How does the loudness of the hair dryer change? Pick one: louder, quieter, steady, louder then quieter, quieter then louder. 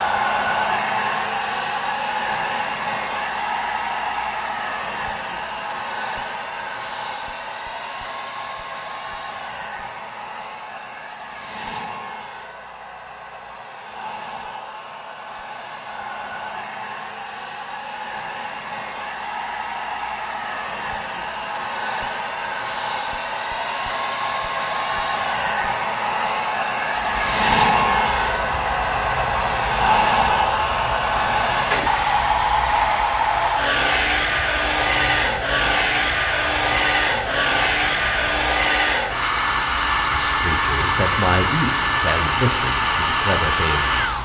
quieter then louder.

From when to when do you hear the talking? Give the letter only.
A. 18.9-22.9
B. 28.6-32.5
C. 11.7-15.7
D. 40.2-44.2
D.